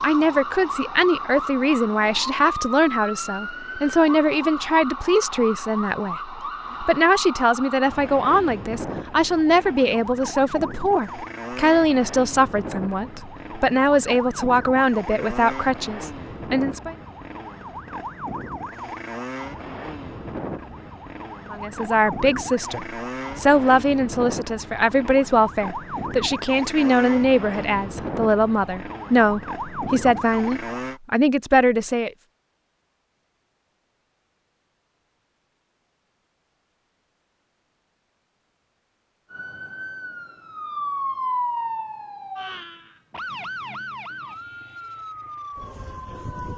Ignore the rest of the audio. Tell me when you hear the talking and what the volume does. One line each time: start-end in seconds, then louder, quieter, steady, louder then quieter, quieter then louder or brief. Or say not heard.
0.0-16.9 steady
21.5-32.1 steady.